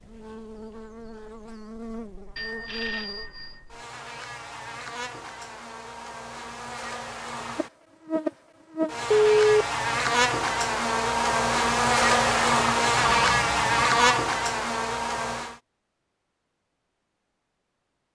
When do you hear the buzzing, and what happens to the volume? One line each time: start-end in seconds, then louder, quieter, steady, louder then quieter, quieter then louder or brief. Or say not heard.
0.0-15.6 louder.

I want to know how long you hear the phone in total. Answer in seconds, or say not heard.
3 s.